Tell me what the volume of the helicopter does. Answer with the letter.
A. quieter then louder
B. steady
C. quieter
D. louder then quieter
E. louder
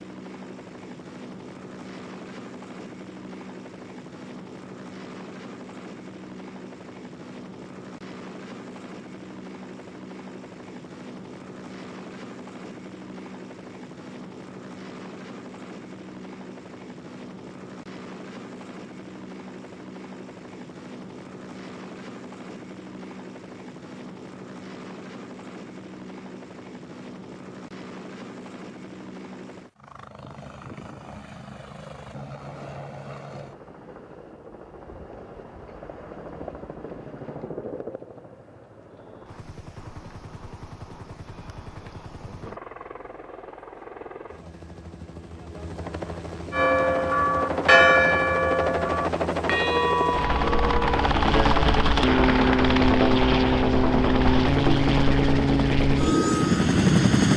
E.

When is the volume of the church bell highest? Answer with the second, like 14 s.
48 s.